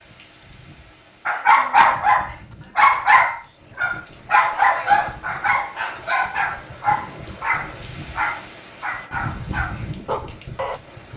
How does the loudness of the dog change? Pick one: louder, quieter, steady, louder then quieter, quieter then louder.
quieter.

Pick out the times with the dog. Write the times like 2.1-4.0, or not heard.
1.2-10.8.